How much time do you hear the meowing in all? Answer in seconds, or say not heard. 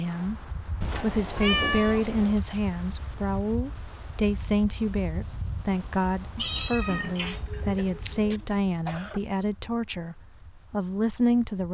4 s.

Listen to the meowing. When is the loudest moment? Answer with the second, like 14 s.
2 s.